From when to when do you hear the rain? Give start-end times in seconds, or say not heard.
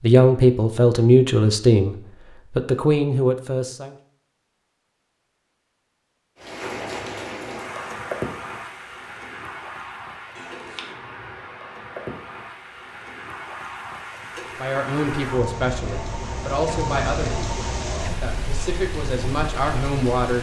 6.3-20.3.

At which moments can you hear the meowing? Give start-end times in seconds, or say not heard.
10.3-10.9.